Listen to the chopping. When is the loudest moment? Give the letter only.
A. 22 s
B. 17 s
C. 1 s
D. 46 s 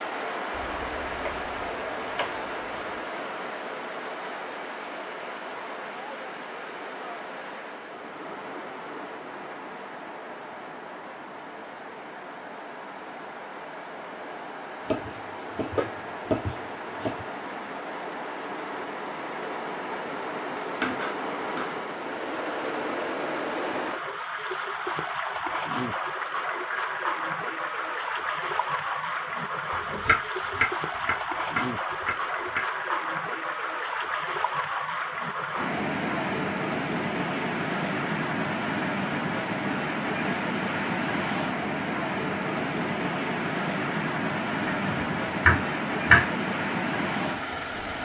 D.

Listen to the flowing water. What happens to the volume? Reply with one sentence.
The loudness of the flowing water goes up.